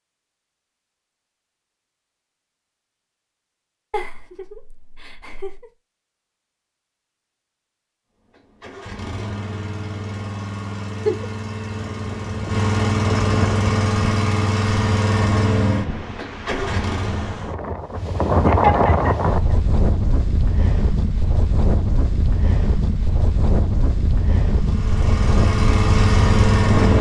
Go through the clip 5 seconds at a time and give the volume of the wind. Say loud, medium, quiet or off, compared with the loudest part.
off, off, medium, loud, loud, loud.